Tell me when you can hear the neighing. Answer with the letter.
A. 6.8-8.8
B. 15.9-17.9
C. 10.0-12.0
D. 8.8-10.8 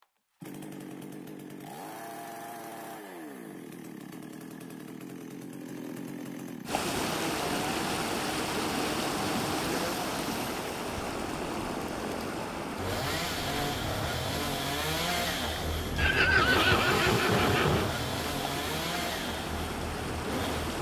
B.